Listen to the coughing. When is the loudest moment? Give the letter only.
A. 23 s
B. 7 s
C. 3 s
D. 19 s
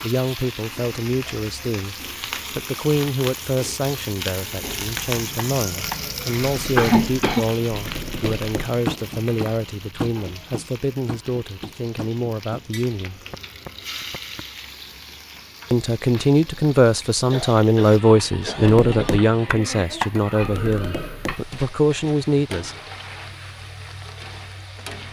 B.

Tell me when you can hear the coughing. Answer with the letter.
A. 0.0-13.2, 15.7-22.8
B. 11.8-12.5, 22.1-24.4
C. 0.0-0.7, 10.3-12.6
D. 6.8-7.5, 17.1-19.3
D.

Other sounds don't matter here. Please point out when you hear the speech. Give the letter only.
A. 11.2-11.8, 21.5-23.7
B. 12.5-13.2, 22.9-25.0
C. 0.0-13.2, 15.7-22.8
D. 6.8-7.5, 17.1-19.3
C.